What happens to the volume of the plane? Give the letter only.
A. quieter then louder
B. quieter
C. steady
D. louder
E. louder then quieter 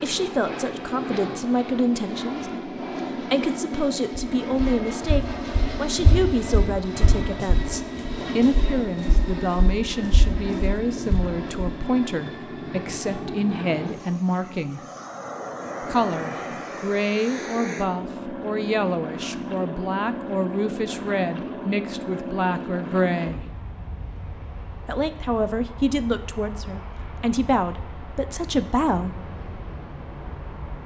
B.